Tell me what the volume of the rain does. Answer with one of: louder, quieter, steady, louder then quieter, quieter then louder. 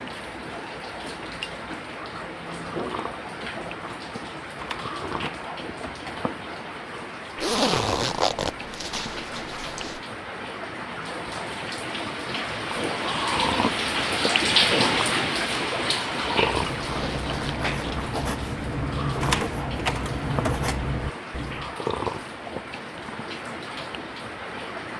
louder then quieter.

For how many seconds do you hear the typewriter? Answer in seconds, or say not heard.
3 s.